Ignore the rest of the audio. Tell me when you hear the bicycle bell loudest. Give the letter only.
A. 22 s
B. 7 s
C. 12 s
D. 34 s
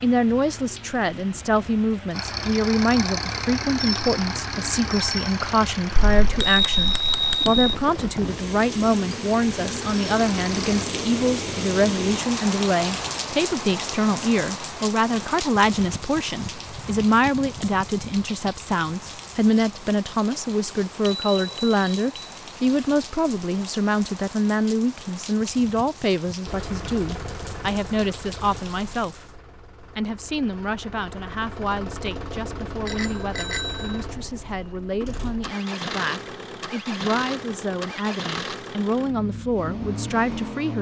B.